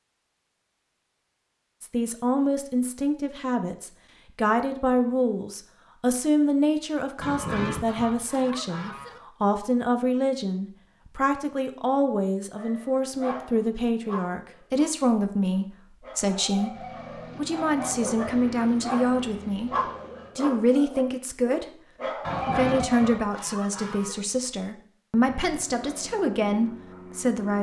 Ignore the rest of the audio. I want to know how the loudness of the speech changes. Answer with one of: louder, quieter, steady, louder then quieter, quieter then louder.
steady.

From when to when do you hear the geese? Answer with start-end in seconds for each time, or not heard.
7.2-9.2, 22.2-24.2.